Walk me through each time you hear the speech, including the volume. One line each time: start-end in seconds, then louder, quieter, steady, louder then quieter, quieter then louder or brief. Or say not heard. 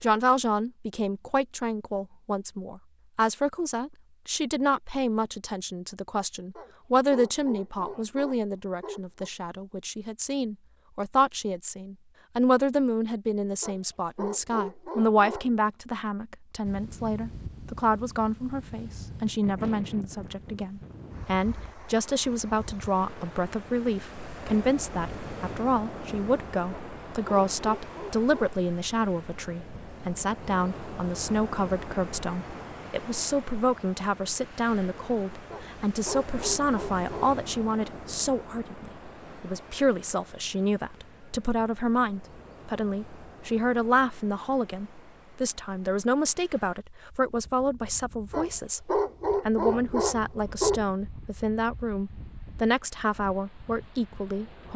0.0-54.7 steady.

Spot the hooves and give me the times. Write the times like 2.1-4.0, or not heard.
not heard.